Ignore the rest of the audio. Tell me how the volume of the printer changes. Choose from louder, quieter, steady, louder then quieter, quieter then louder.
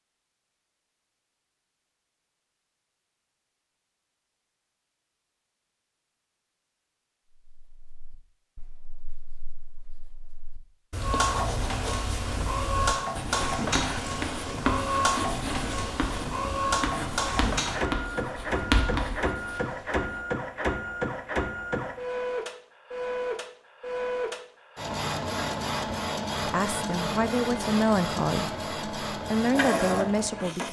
steady.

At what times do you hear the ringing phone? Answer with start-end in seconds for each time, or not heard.
not heard.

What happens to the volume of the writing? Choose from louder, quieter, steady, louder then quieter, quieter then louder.
louder.